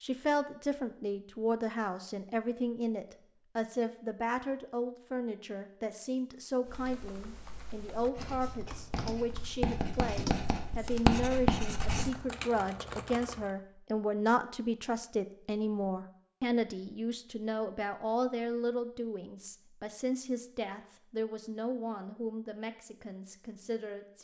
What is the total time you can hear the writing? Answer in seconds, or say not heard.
4 s.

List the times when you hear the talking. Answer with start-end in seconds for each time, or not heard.
0.0-24.1.